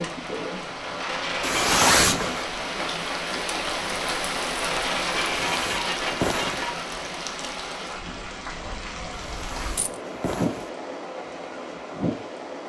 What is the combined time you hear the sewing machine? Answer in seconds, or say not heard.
not heard.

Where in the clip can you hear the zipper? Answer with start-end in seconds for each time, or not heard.
1.4-2.5, 5.2-6.7, 9.1-10.7.